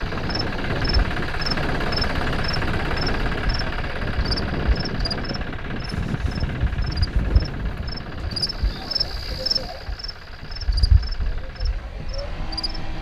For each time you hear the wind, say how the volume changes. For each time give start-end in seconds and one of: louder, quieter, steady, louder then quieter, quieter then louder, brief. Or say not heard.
0.0-12.9 quieter.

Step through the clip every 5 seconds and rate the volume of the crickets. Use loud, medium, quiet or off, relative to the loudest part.
loud, loud, medium.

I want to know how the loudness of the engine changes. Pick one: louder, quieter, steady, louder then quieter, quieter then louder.
quieter.